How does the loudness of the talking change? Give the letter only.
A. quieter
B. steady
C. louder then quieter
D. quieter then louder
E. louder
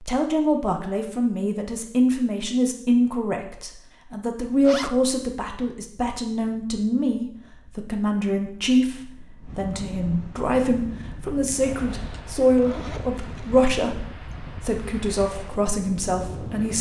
B.